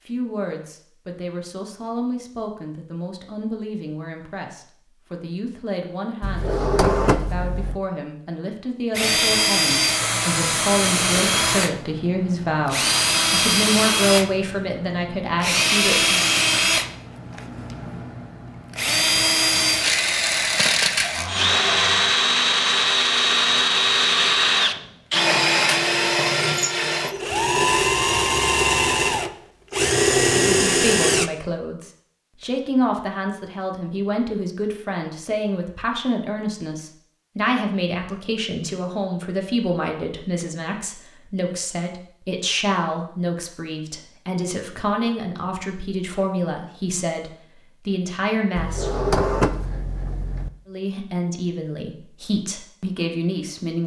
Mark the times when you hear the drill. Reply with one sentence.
The drill can be heard from 8.9 to 31.3 s.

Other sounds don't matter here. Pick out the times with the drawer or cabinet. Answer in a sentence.
The drawer or cabinet can be heard from 6.2 to 7.8 s, from 21.0 to 22.1 s and from 48.5 to 50.5 s.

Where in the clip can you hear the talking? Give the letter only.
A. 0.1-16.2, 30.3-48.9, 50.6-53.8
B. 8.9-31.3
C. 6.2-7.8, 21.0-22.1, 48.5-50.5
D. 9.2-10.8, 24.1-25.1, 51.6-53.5
A.